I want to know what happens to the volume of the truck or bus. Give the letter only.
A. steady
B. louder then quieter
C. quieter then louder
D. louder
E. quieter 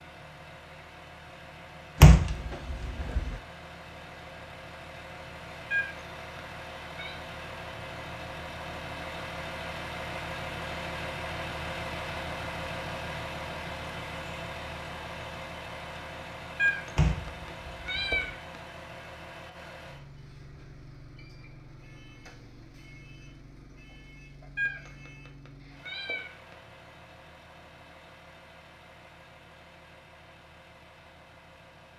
B.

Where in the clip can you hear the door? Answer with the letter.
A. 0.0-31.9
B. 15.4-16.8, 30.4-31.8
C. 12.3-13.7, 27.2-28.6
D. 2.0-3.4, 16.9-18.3
D.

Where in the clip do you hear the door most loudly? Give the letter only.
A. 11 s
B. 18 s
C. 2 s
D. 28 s
C.